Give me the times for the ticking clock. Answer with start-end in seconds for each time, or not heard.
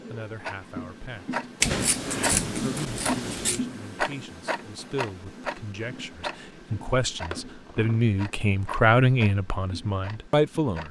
0.0-10.8.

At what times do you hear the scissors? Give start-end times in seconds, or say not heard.
1.6-3.6, 7.3-8.0.